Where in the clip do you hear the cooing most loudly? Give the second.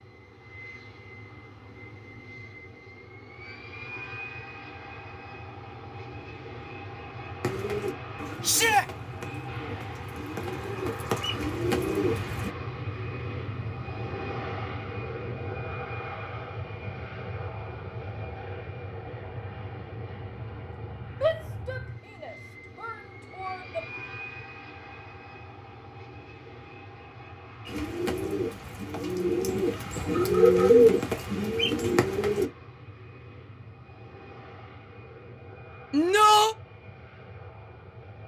31 s.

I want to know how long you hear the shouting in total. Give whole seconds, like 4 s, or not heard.
4 s.